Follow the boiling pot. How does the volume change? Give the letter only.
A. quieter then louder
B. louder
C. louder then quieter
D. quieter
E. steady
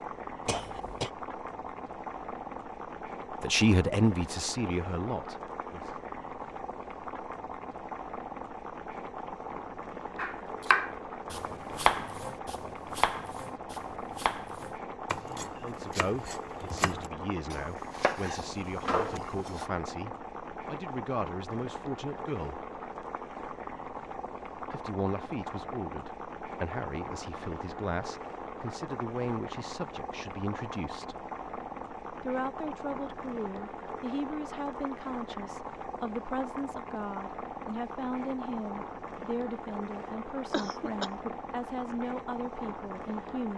E.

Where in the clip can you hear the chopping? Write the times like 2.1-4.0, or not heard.
10.2-19.6.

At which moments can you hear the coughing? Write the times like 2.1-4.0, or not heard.
0.5-1.1, 40.5-41.4.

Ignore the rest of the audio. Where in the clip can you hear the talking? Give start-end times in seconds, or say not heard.
3.4-5.9, 15.6-22.6, 24.7-31.1, 32.2-43.5.